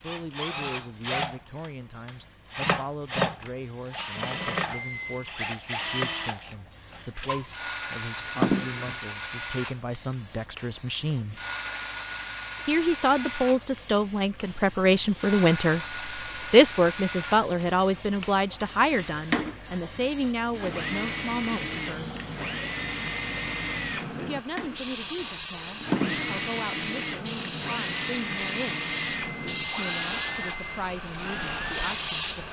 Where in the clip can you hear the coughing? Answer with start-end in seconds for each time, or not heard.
8.2-8.9, 25.6-26.3.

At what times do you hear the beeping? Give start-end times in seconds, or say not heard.
4.7-5.3, 28.9-30.8.